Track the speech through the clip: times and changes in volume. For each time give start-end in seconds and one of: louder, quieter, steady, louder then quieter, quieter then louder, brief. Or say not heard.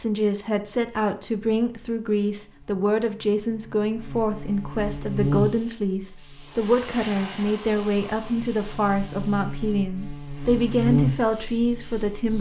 0.0-12.3 steady.